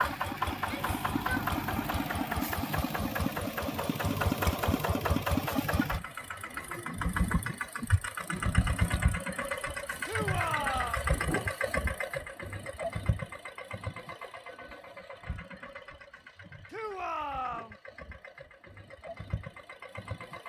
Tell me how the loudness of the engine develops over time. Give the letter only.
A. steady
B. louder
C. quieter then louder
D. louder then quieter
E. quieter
E.